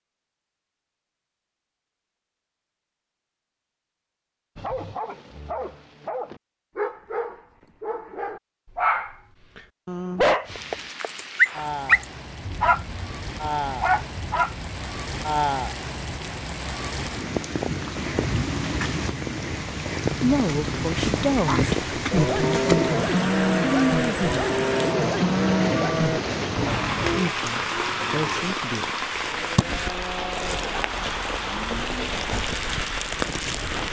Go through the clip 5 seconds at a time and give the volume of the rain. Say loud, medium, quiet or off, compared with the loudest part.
off, off, medium, loud, loud, loud, loud.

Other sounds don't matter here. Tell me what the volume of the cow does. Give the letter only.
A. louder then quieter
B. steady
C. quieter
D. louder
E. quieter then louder
C.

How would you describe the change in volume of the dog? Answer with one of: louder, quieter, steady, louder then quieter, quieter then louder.
louder then quieter.